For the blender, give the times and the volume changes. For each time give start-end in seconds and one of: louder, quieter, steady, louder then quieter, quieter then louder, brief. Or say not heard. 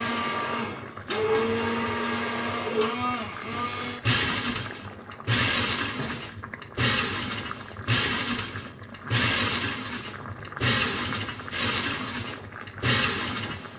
0.0-13.7 steady.